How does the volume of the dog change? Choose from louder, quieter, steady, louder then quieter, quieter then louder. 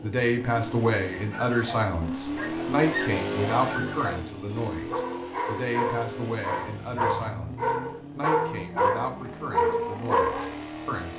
louder.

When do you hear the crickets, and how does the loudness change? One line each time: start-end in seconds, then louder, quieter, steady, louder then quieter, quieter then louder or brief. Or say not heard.
not heard.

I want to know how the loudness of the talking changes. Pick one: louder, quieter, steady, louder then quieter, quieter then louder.
quieter.